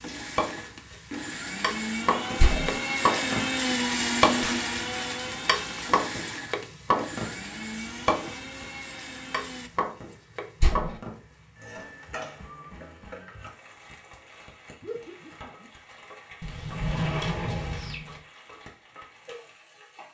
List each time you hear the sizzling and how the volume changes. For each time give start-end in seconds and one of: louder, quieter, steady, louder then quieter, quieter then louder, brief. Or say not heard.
0.0-20.0 quieter.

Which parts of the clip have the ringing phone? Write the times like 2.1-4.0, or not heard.
not heard.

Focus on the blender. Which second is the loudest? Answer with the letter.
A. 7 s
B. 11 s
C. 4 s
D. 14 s
C.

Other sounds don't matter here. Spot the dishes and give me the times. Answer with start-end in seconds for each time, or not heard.
not heard.